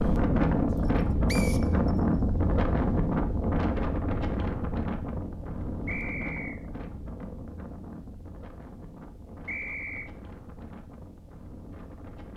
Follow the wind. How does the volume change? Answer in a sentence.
The loudness of the wind goes down.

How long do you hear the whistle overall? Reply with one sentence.
You can hear the whistle for 2 seconds altogether.